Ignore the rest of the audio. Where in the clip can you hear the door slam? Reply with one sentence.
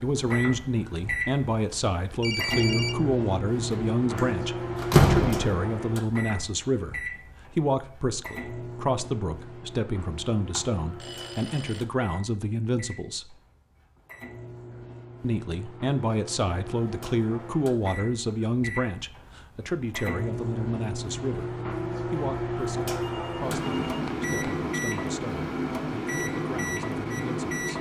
The door slam can be heard from 4.2 to 5.7 s.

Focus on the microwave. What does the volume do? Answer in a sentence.
The volume of the microwave goes down, then up.